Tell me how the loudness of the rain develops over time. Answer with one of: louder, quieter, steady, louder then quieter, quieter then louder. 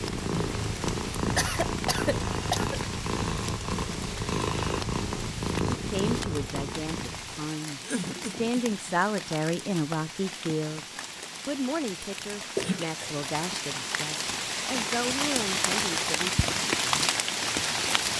louder.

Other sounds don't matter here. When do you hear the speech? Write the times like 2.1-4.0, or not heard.
5.8-16.3.